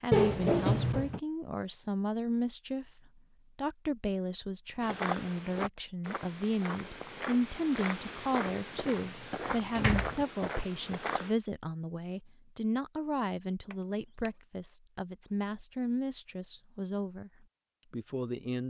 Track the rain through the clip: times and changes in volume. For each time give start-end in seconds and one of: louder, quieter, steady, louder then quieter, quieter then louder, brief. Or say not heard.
not heard.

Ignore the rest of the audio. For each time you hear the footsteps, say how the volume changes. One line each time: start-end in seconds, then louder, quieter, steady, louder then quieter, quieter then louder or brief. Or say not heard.
4.8-11.3 steady.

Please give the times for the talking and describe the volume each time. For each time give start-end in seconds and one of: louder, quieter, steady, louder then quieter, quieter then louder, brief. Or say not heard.
0.0-18.6 steady.